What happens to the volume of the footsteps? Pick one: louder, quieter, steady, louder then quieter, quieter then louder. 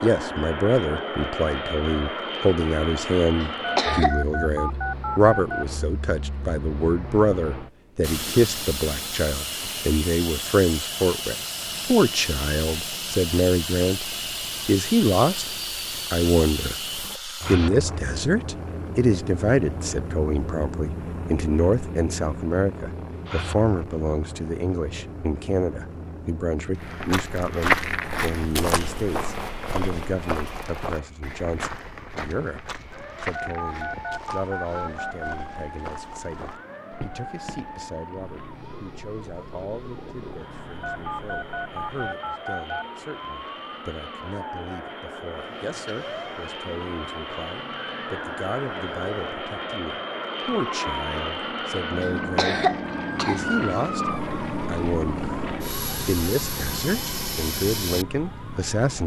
quieter.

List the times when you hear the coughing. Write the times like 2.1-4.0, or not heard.
3.4-4.2, 52.0-53.5.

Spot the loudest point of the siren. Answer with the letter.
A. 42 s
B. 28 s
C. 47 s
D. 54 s
D.